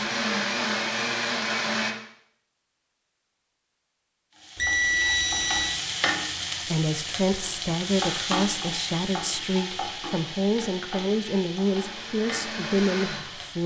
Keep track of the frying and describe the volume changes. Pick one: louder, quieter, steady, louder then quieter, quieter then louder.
quieter.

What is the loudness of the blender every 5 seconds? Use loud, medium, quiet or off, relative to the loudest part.
loud, off, medium.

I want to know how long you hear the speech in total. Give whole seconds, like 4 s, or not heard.
7 s.